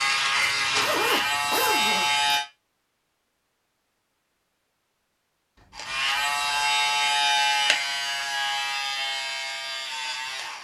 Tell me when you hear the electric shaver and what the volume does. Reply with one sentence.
You can hear the electric shaver briefly from 0.0 to 2.5 s; and from 5.8 to 10.5 s, getting quieter.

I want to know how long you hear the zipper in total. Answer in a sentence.
The zipper can be heard for 3 seconds in total.